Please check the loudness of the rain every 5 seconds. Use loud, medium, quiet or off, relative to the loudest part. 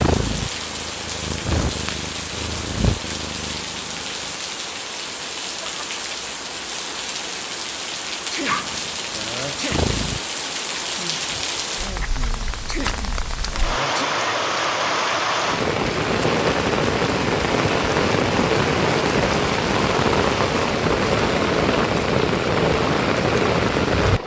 medium, medium, medium, loud, loud.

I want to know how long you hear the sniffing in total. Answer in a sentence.
The sniffing can be heard for 3 seconds in total.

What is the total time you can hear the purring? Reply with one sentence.
You can hear the purring for 6 seconds altogether.